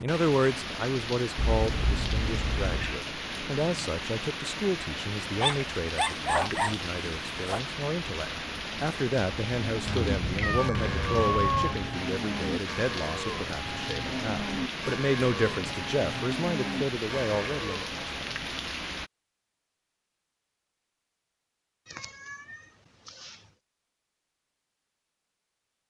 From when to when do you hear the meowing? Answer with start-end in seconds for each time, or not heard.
1.4-3.0, 9.8-11.8, 21.9-23.4.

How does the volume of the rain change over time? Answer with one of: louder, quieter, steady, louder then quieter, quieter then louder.
steady.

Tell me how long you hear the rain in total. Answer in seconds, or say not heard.
19 s.